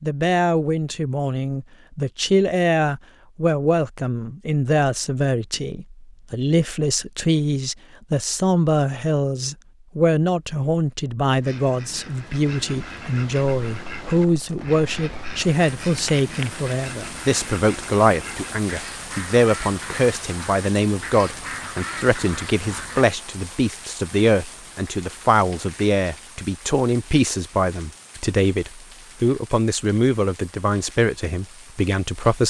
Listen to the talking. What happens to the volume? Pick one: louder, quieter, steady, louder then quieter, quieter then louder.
steady.